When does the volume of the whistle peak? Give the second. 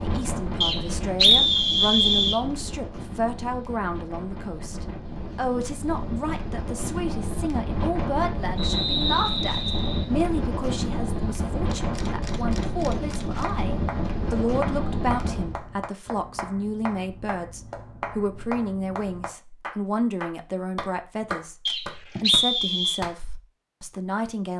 1 s.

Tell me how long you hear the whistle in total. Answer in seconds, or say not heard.
5 s.